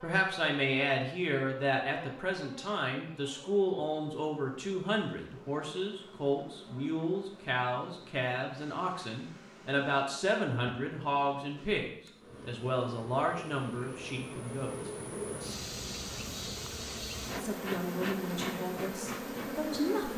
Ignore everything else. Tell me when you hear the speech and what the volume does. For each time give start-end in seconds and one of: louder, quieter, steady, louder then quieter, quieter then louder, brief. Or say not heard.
0.0-14.9 steady
17.4-20.1 brief.